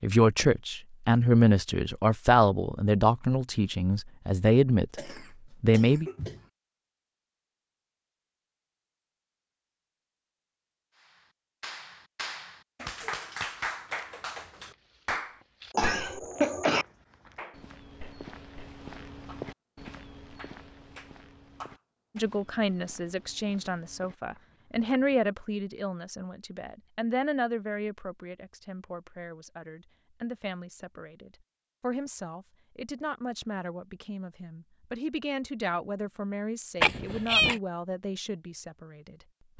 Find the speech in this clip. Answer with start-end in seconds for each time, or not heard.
0.0-6.1, 22.1-39.5.